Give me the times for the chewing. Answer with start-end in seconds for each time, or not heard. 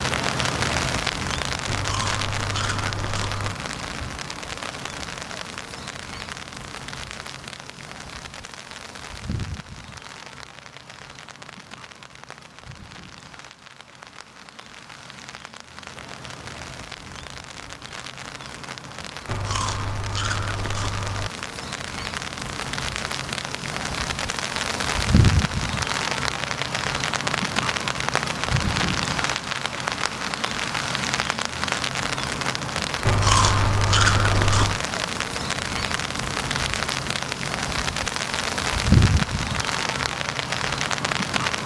1.6-3.5, 19.2-21.3, 33.0-34.8.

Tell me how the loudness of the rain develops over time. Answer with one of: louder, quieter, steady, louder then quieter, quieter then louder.
quieter then louder.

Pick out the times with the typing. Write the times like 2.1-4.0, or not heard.
not heard.